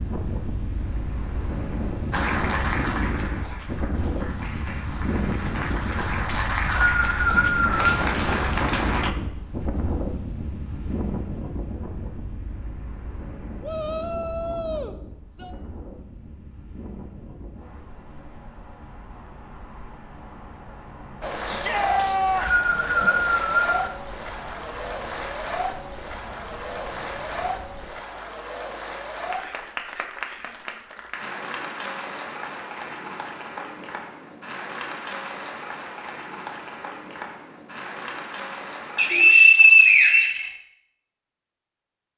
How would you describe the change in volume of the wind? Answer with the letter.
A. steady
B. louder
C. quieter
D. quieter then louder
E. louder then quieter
C.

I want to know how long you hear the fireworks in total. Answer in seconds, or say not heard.
not heard.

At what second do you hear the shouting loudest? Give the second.
22 s.